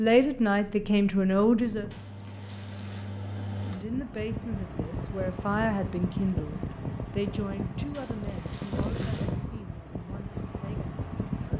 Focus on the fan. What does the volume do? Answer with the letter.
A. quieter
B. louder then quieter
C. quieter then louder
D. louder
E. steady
D.